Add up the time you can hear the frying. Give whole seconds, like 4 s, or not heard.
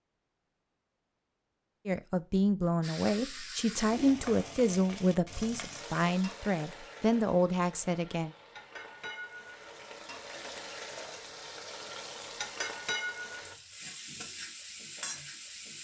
13 s.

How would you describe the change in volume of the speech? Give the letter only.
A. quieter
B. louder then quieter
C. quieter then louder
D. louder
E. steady
E.